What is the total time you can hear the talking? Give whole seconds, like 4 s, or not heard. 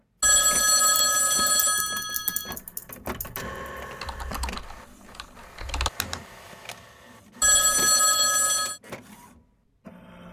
not heard.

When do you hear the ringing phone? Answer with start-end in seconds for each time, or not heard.
0.2-2.5, 7.4-8.8.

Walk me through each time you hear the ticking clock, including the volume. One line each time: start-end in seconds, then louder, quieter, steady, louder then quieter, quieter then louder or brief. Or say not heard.
not heard.